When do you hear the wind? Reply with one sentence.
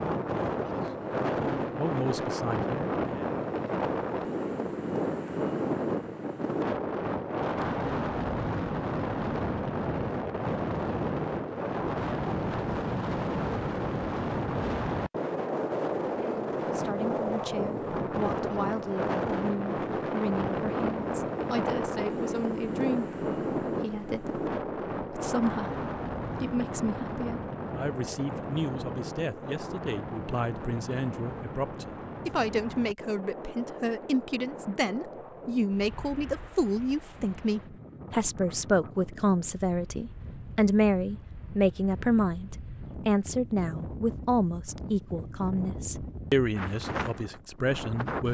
The wind can be heard from 0.0 to 48.3 s.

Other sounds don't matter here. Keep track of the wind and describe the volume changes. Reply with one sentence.
The loudness of the wind goes down.